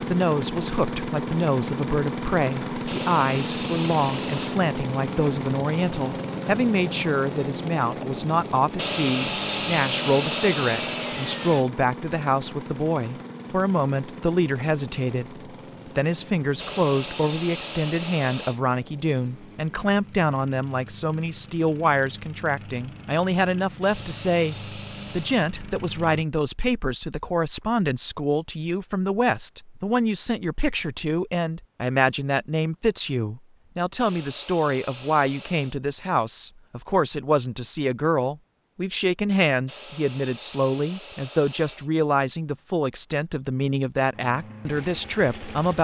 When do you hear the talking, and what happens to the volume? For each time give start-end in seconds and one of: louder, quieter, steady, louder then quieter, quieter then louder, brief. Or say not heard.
0.0-45.7 steady.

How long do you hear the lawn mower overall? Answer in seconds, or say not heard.
28 s.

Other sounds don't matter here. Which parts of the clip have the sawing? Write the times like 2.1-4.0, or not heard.
2.9-4.6, 8.8-11.7, 16.6-18.6, 23.8-25.4, 34.0-35.8, 39.6-41.9.